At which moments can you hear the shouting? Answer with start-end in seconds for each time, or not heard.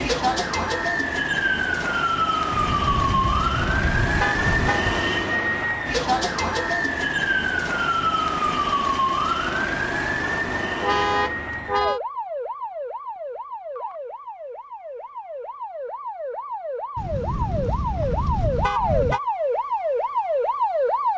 not heard.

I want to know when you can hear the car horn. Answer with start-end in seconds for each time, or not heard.
2.5-5.1, 10.8-12.0, 16.9-19.2.